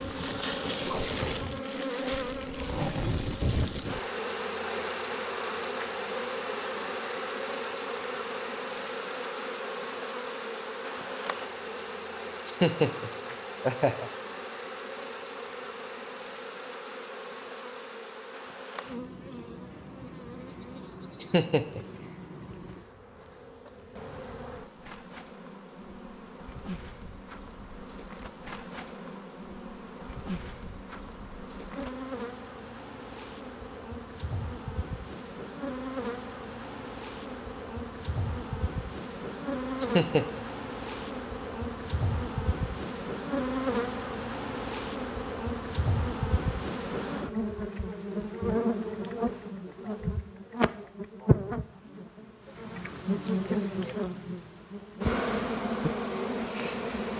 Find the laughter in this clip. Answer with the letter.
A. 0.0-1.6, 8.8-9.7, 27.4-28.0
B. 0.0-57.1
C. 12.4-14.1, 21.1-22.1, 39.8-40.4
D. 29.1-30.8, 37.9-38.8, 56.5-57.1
C.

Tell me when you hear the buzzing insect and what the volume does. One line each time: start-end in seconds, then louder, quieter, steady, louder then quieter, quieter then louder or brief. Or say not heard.
0.0-57.1 quieter then louder.